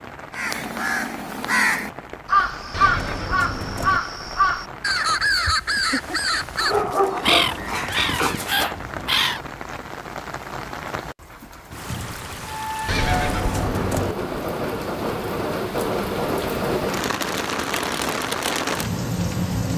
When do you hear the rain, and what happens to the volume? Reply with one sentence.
You can hear the rain from 0.0 to 19.7 s, getting louder.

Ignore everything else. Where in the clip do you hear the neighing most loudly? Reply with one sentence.
The loudest moment of the neighing is at 13 seconds.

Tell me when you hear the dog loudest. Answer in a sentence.
The volume of the dog peaks at 7 seconds.